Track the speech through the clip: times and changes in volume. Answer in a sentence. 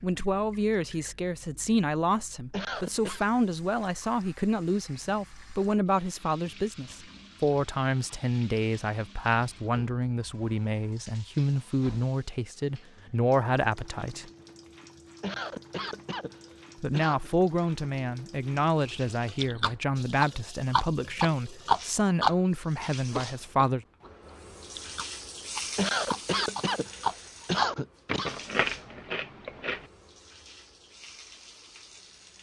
You can hear the speech from 0.0 to 14.2 s, at a steady volume; and from 16.8 to 23.9 s, at a steady volume.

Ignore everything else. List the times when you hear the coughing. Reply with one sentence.
The coughing can be heard from 2.5 to 3.2 s, from 15.2 to 17.3 s and from 25.8 to 28.3 s.